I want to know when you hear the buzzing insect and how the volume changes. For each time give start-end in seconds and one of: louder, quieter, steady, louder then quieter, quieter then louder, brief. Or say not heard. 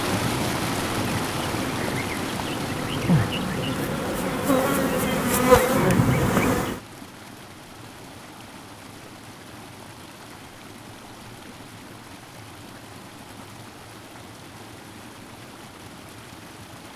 0.0-6.8 louder.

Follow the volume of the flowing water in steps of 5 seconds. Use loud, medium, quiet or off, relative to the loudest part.
loud, quiet, quiet, quiet.